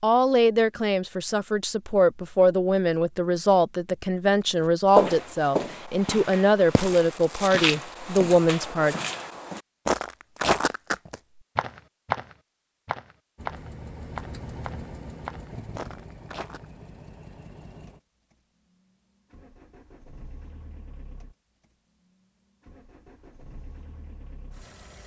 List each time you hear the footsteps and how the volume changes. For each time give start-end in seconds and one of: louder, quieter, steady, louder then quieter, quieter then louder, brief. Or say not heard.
5.0-16.6 louder then quieter.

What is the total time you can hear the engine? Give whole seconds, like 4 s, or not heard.
12 s.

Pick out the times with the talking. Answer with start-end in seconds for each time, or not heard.
0.0-8.9.